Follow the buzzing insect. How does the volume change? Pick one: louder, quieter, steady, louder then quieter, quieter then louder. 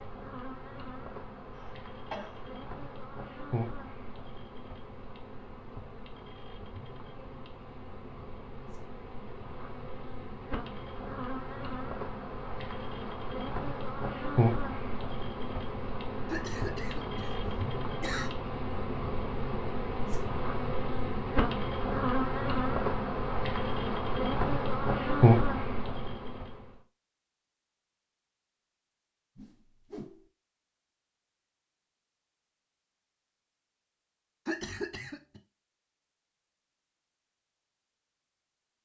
louder.